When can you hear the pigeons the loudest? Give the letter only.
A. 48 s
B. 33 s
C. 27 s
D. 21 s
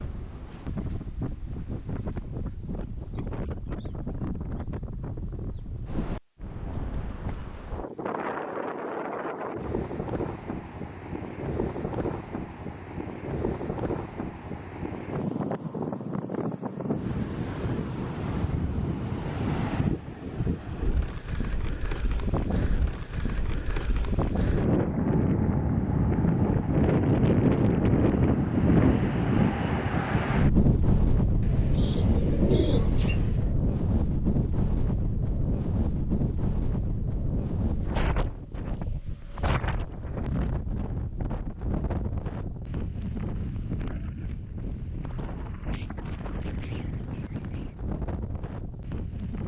B.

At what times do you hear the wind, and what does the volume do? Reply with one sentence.
The wind can be heard from 0.0 to 49.4 s, getting louder then quieter.